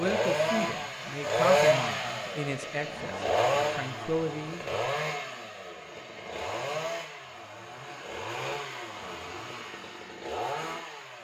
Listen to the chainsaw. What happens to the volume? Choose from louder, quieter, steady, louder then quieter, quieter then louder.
quieter.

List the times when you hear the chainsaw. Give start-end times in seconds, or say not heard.
0.0-11.1.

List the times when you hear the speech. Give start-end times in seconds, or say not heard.
0.0-4.8.